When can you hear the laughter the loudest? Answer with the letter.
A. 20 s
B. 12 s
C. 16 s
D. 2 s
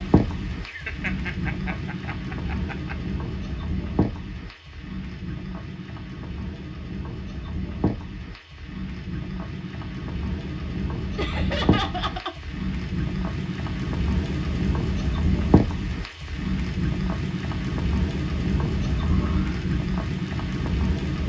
B.